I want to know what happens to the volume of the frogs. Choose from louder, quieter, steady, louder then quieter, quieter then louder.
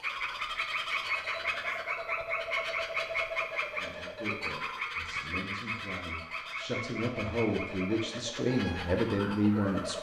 quieter.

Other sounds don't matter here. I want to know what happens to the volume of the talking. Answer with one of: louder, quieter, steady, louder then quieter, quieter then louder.
louder.